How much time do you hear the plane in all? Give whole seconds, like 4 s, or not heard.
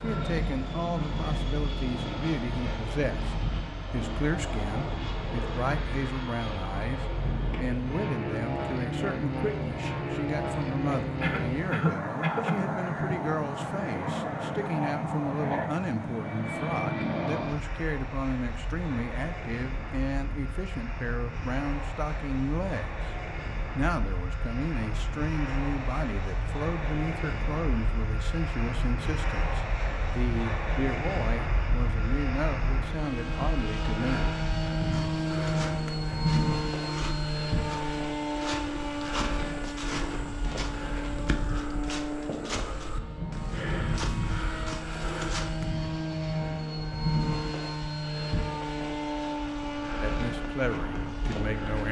52 s.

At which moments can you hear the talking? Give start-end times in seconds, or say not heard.
0.0-23.1, 23.8-34.4, 50.0-51.8.